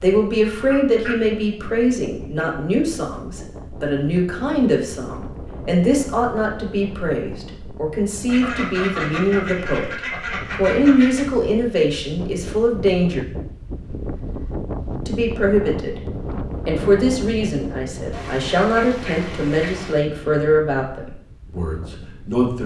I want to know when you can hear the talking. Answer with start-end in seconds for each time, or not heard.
0.0-9.9, 10.6-13.2, 15.1-16.0, 16.6-22.6.